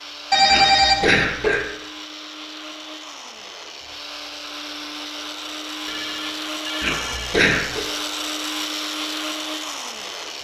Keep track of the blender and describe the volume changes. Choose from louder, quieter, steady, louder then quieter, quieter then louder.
louder.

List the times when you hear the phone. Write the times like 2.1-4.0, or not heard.
0.3-1.2, 5.8-7.4.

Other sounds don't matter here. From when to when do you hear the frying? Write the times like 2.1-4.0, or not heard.
not heard.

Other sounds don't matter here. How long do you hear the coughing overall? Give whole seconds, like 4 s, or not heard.
2 s.